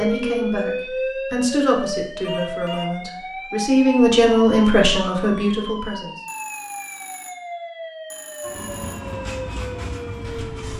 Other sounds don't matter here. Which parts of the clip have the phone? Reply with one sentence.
The phone can be heard from 2.2 to 3.0 s and from 6.2 to 8.9 s.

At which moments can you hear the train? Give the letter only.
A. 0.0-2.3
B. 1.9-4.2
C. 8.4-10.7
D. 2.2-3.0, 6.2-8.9
C.